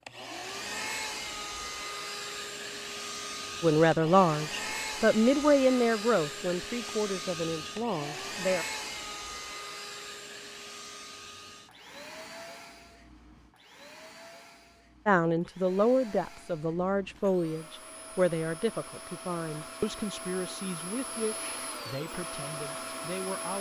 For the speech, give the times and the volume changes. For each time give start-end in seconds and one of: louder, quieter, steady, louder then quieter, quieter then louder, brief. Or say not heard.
3.6-8.7 quieter
15.1-23.5 quieter.